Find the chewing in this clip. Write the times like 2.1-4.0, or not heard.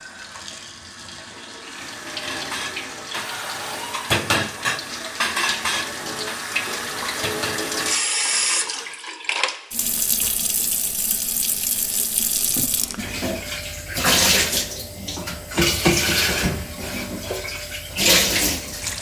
not heard.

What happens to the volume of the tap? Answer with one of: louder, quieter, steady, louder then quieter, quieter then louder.
louder.